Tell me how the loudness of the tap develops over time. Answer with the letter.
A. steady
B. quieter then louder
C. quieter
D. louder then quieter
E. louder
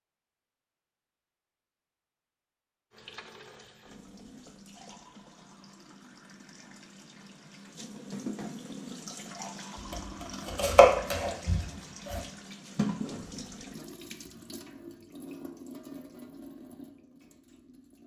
D.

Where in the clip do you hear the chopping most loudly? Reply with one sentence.
The volume of the chopping peaks at 11 seconds.